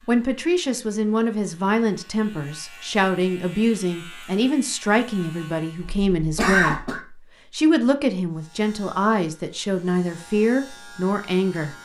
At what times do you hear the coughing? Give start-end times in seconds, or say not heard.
5.8-7.0.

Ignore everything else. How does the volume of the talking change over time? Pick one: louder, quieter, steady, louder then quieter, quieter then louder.
steady.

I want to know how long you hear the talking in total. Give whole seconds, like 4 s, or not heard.
12 s.